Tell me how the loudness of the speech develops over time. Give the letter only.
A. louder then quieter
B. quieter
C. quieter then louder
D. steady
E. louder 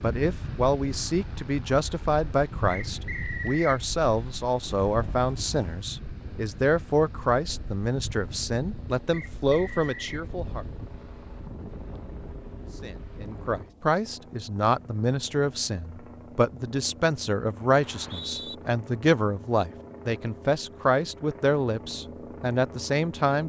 D.